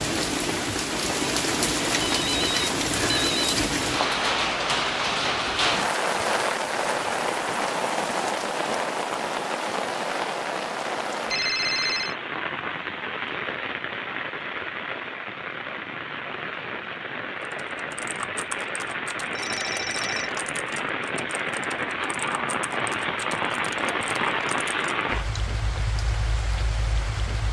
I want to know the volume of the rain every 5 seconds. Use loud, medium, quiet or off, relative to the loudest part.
loud, loud, medium, medium, loud, medium.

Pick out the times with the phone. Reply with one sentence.
You can hear the phone from 2.1 to 3.5 s, from 11.3 to 12.2 s and from 19.4 to 20.3 s.